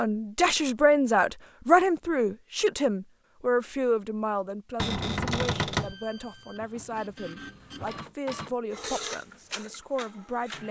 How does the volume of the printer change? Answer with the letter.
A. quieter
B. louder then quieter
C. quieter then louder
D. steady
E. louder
B.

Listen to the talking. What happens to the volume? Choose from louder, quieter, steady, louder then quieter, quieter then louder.
quieter.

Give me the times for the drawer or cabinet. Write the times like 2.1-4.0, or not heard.
4.8-6.0.